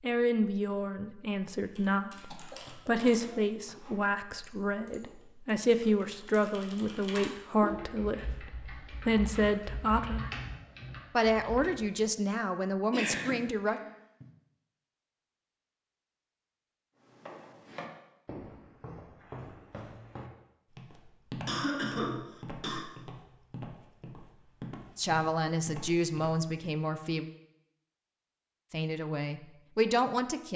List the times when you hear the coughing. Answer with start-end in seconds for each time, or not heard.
2.3-3.9, 12.9-14.2, 21.4-22.9.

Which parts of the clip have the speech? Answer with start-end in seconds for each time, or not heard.
0.0-10.3, 11.2-13.8, 24.9-27.2, 28.7-30.5.